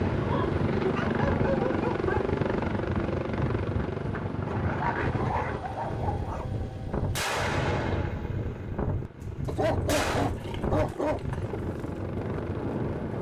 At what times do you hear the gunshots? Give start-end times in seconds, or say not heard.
7.1-10.3.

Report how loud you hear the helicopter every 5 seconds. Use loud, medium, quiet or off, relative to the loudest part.
loud, quiet, medium.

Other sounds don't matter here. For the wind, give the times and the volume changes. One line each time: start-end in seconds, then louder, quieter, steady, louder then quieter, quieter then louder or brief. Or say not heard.
0.0-13.1 steady.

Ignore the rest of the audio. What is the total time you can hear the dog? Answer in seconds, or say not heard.
6 s.